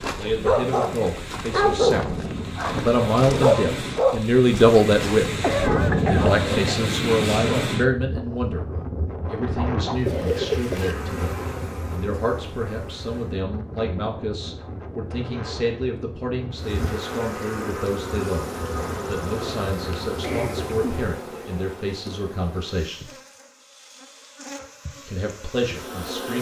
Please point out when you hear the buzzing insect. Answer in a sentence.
You can hear the buzzing insect from 9.8 to 13.4 s and from 16.5 to 26.3 s.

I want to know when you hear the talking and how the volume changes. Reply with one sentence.
You can hear the talking from 0.0 to 5.3 s, getting louder; briefly from 6.1 to 8.7 s; from 9.2 to 23.1 s, at a steady volume; and briefly from 25.1 to 26.3 s.